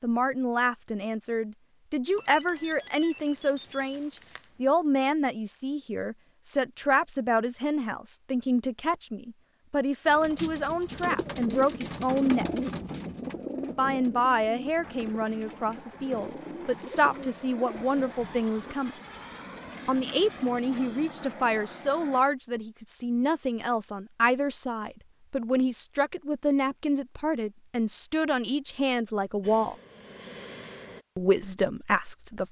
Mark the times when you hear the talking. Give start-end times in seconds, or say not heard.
0.0-12.4, 13.8-18.9, 19.9-29.8, 31.1-32.4.